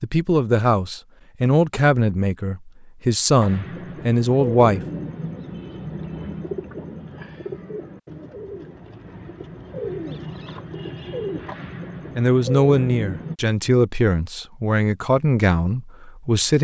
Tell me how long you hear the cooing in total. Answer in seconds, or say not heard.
10 s.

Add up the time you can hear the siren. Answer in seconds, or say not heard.
not heard.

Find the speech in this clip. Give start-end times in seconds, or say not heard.
0.0-4.8, 12.2-16.6.